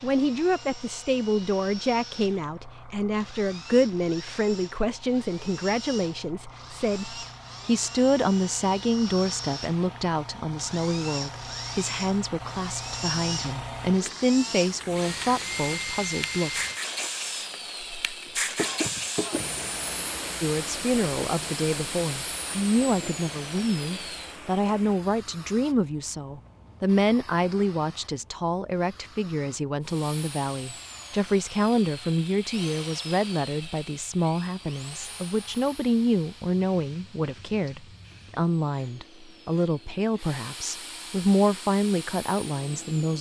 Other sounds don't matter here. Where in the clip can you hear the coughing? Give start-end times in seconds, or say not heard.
18.2-19.5.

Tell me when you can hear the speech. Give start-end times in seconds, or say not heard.
0.0-16.6, 20.4-43.1.